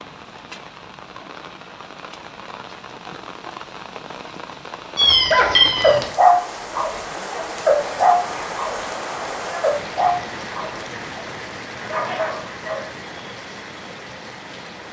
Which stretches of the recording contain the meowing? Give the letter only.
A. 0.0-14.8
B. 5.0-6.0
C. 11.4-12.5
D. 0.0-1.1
B.